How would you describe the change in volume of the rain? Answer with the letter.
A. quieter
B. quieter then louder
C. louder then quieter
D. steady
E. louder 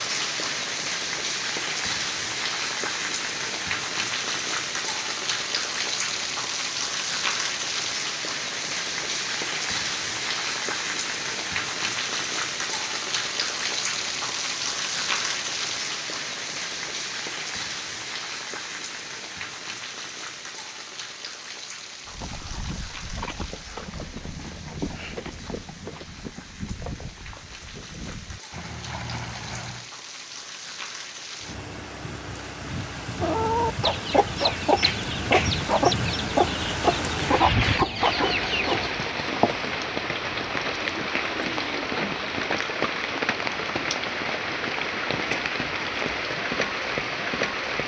B.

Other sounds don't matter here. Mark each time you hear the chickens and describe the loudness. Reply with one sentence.
You can hear the chickens from 33.2 to 38.9 s, at a steady volume.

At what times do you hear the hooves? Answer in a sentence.
You can hear the hooves from 22.1 to 29.9 s.